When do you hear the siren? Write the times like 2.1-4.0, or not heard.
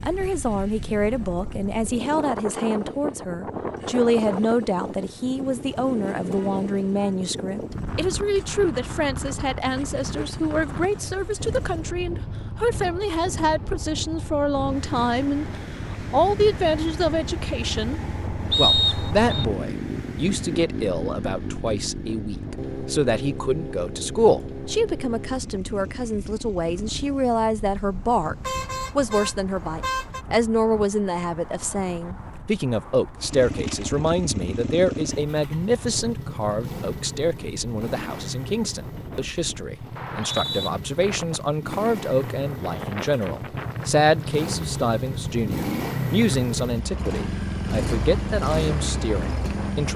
not heard.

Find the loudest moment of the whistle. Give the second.
19 s.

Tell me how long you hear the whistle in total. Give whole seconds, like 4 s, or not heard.
2 s.